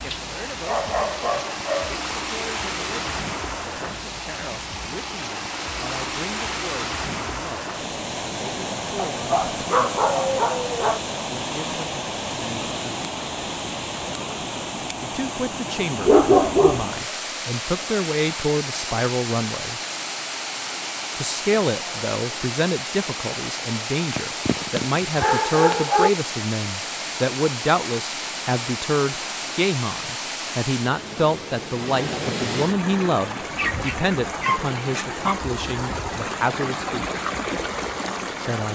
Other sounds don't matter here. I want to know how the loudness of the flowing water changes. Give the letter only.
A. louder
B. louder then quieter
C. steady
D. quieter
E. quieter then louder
C.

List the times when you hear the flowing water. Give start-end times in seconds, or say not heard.
0.0-38.7.